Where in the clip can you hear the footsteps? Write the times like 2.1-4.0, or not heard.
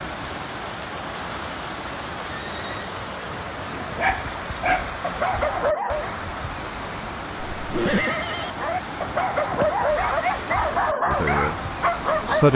not heard.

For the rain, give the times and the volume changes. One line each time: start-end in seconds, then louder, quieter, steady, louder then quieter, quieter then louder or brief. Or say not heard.
0.0-12.5 steady.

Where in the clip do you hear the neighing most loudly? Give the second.
8 s.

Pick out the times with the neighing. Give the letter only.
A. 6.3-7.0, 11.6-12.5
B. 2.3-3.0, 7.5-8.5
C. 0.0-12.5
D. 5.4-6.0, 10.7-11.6
B.